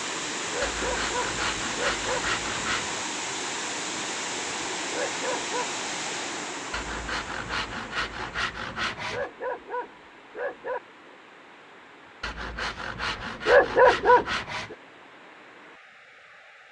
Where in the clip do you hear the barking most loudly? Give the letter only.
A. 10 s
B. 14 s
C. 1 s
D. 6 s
B.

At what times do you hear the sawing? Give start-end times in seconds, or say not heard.
0.6-3.0, 6.7-9.3, 12.2-14.8.